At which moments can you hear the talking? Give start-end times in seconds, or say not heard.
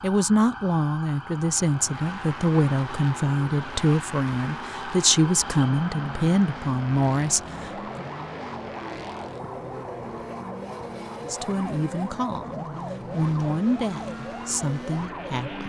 0.0-8.1, 11.2-15.6.